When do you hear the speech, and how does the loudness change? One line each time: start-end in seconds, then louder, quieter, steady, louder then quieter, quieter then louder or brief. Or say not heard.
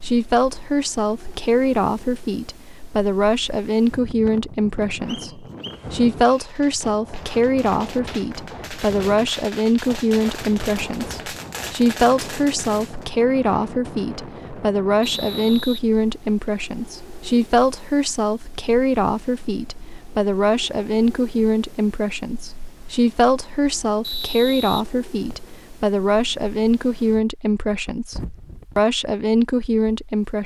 0.0-30.4 steady.